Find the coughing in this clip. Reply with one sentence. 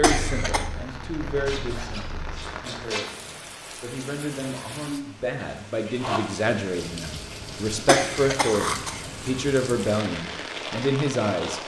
The coughing can be heard from 0.0 to 0.7 s and from 7.8 to 9.3 s.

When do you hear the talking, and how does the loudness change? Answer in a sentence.
You can hear the talking from 0.0 to 11.6 s, getting louder.